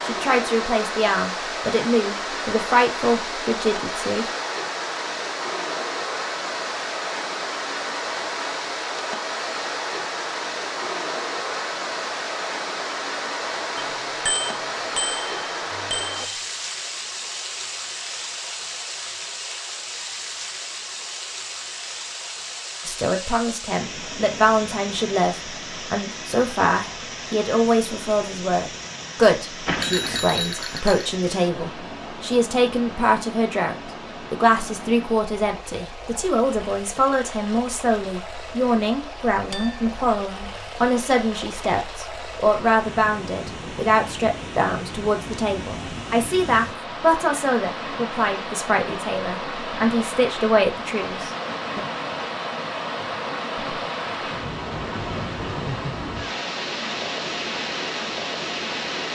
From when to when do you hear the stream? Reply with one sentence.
You can hear the stream from 0.0 to 59.1 s.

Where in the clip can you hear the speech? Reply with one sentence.
You can hear the speech from 0.0 to 4.2 s and from 22.9 to 51.9 s.